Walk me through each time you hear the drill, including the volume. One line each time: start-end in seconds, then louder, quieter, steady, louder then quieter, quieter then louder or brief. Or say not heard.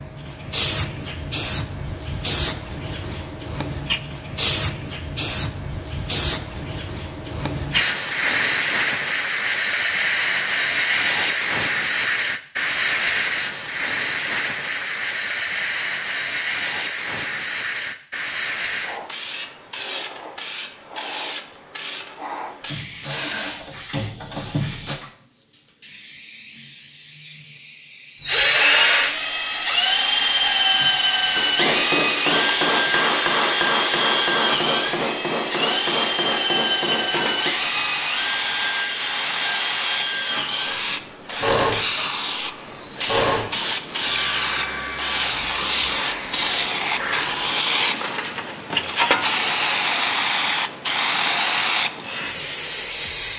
22.6-24.9 brief
28.2-47.4 quieter.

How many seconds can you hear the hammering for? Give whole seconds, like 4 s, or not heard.
7 s.